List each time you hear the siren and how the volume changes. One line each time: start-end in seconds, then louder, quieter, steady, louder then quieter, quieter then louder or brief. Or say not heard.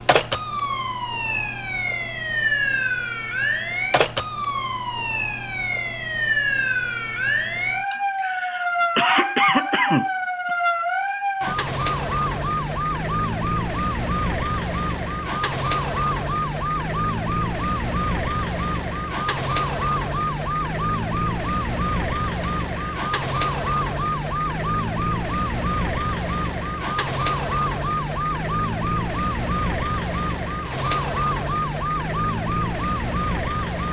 0.0-33.8 steady.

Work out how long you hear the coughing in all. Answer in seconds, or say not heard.
3 s.